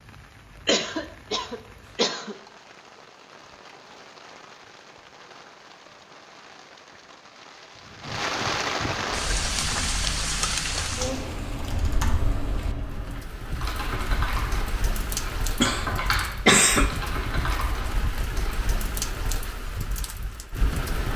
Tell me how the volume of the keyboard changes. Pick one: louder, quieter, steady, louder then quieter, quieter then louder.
louder.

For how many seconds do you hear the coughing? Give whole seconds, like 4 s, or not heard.
3 s.